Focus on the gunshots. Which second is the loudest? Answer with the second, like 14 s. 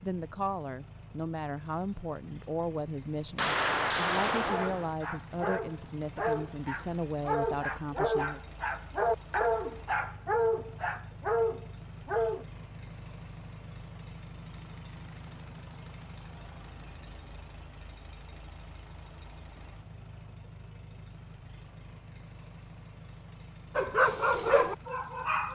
4 s.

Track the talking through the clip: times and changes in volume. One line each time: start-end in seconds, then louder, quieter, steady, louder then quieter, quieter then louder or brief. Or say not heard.
0.0-8.4 steady.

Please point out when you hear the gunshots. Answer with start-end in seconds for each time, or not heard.
3.4-5.0.